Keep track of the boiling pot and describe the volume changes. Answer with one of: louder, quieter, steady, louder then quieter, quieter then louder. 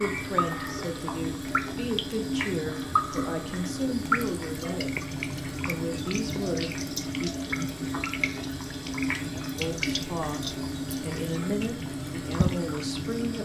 steady.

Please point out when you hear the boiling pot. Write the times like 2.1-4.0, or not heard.
0.0-13.3.